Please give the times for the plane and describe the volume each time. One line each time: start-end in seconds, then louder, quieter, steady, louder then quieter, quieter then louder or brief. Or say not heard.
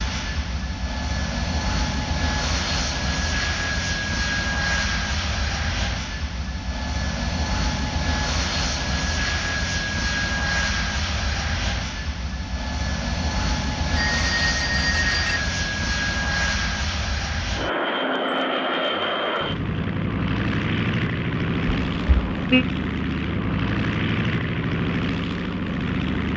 0.0-26.3 steady.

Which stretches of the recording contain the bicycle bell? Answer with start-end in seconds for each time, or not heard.
13.9-15.4.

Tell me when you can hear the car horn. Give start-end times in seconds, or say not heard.
21.8-22.6.